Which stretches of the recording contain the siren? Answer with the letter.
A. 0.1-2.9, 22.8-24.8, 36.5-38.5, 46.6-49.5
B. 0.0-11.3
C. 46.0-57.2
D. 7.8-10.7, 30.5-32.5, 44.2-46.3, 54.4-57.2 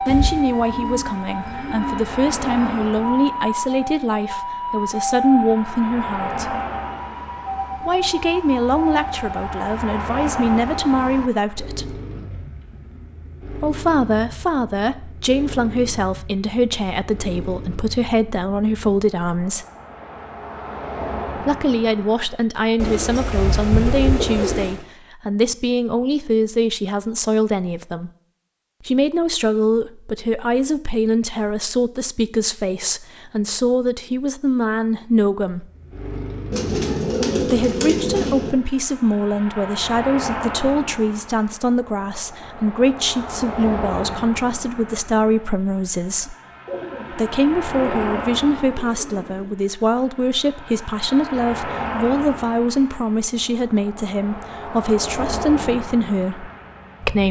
B.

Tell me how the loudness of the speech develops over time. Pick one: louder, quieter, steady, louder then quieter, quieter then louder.
steady.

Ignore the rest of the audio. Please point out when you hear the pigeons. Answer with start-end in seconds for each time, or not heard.
0.1-2.9, 22.8-24.8, 36.5-38.5, 46.6-49.5.